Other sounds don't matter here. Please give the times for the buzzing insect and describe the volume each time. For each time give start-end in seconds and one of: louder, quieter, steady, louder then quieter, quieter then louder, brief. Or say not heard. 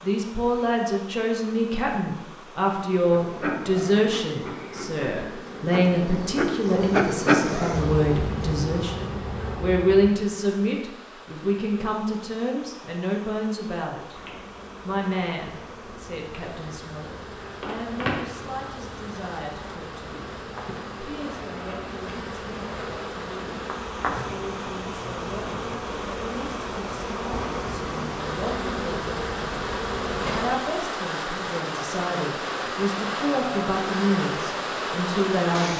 3.1-10.1 louder then quieter
14.1-30.6 louder.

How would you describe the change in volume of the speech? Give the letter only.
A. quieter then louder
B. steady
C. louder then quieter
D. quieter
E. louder
A.